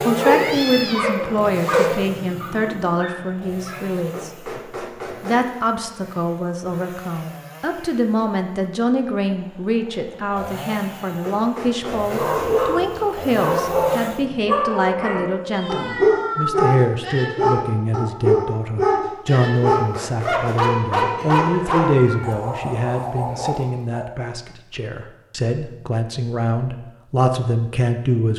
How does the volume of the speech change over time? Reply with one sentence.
The loudness of the speech stays about the same.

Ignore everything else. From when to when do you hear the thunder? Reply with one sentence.
The thunder can't be heard in this clip.